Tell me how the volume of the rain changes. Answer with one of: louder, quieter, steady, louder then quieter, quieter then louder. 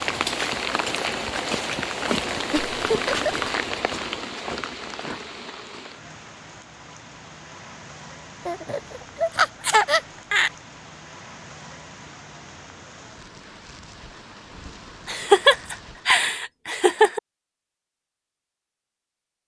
quieter.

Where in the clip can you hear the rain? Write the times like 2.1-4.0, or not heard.
0.0-16.2.